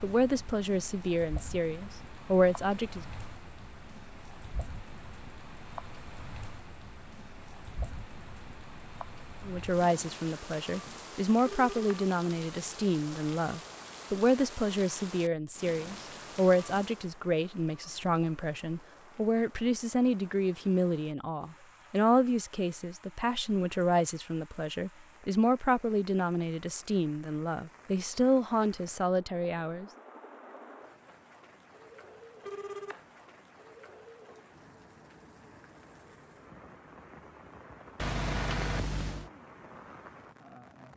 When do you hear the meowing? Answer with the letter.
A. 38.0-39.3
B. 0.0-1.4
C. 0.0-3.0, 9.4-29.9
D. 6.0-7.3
A.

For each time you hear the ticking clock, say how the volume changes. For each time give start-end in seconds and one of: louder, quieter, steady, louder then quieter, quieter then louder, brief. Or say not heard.
not heard.